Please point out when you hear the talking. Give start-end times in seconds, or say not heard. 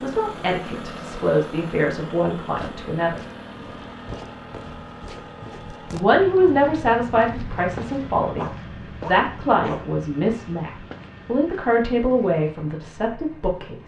0.0-3.2, 5.9-13.8.